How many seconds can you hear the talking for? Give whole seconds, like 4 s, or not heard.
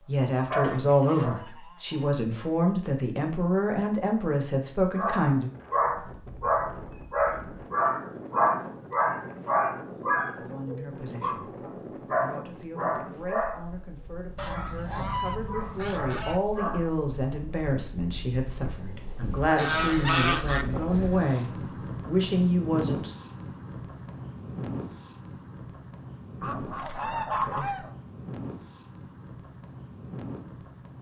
18 s.